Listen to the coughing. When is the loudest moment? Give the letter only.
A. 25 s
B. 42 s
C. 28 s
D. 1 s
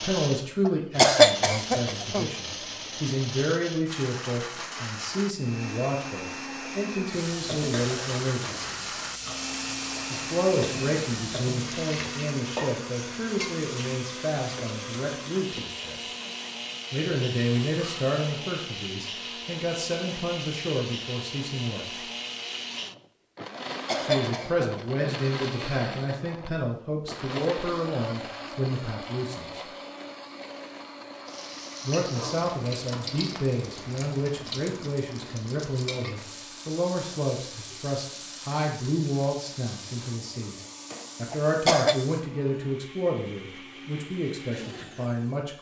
D.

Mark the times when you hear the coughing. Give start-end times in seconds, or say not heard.
0.7-2.3, 23.6-25.2, 41.3-42.0.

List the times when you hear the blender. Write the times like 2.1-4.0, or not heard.
0.0-45.5.